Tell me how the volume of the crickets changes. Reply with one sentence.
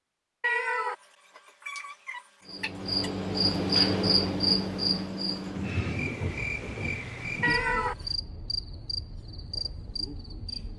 The loudness of the crickets goes down.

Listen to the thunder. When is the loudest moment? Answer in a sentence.
The loudest moment of the thunder is at 6 seconds.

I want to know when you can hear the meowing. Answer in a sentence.
The meowing can be heard from 0.4 to 3.1 s and from 7.4 to 8.0 s.